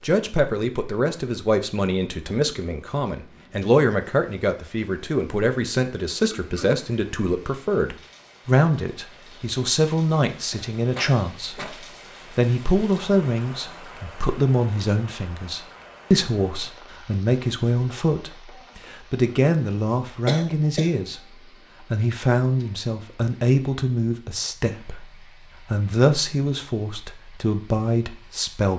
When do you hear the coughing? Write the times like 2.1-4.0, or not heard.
6.3-6.8, 10.5-11.8, 20.2-20.9.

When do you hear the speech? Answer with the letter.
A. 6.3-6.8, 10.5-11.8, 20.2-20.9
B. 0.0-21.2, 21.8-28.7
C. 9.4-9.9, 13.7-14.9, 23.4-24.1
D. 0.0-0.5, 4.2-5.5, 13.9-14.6
B.